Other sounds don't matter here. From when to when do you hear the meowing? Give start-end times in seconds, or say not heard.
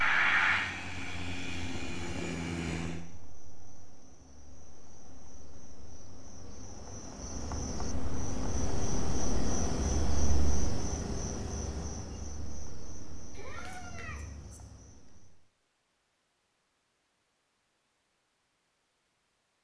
13.3-14.6.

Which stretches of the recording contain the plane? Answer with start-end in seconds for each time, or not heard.
0.0-3.0.